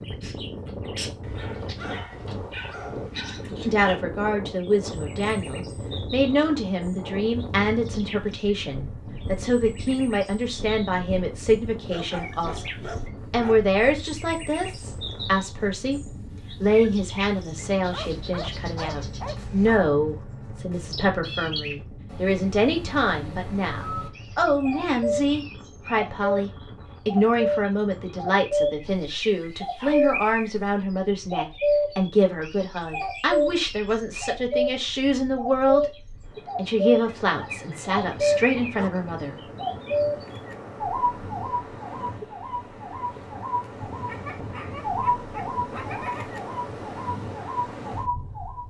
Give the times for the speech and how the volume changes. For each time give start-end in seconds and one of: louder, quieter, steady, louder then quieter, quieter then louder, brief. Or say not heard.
3.6-35.9 steady
36.5-39.4 brief.